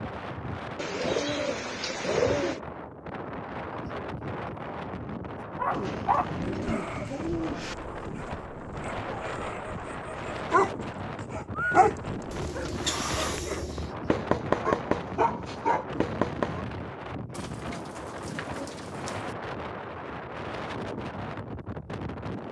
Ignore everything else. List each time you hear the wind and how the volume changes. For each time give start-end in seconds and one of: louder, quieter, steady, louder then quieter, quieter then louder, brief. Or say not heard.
0.0-22.4 steady.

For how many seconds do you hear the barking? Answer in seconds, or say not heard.
11 s.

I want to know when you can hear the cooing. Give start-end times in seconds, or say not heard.
0.8-2.6, 5.8-7.8, 12.3-13.9, 17.3-19.4.